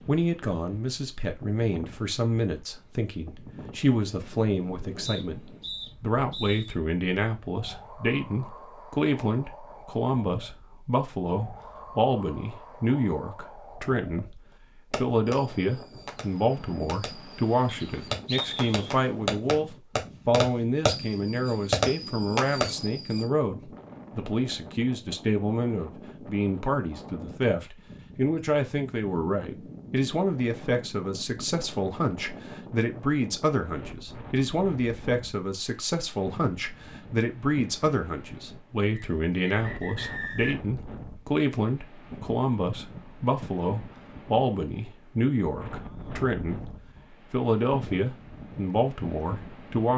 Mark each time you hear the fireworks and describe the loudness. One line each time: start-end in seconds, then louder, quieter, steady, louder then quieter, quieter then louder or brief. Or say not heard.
14.9-23.2 louder.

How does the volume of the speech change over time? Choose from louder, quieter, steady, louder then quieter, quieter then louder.
steady.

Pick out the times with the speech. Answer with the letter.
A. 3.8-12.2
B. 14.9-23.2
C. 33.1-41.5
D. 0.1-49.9
D.